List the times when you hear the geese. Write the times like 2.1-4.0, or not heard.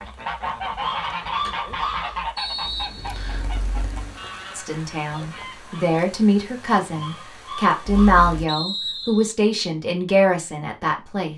0.0-6.0.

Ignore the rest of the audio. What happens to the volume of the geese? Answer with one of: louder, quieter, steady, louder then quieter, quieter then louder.
quieter.